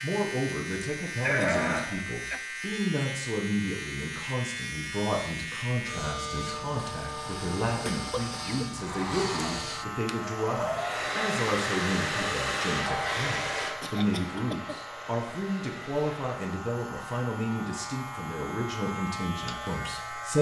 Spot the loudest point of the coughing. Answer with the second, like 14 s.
1 s.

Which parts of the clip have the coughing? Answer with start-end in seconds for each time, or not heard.
0.8-2.4, 7.8-8.6, 13.8-14.8.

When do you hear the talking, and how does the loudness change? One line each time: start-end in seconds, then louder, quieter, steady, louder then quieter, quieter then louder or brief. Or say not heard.
0.0-20.3 steady.